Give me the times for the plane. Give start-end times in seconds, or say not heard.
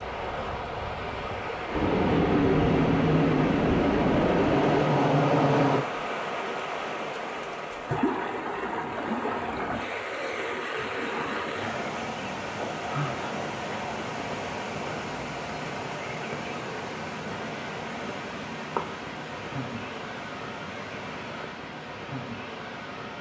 0.1-5.8.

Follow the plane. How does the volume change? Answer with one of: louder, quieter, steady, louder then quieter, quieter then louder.
louder.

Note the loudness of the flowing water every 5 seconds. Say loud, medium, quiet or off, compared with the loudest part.
loud, loud, loud, loud, medium.